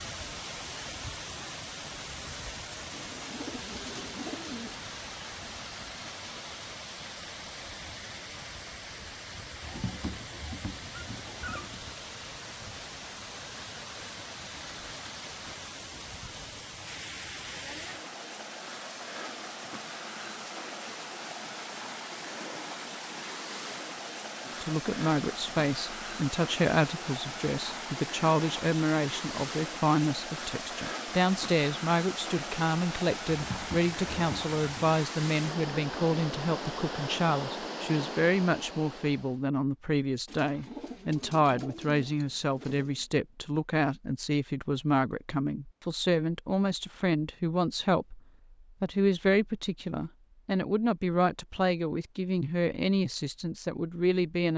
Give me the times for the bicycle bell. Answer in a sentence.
The bicycle bell can't be heard in this clip.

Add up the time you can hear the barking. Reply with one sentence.
The barking can be heard for 4 seconds in total.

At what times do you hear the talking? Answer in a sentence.
The talking can be heard from 24.4 to 48.2 s and from 48.8 to 54.5 s.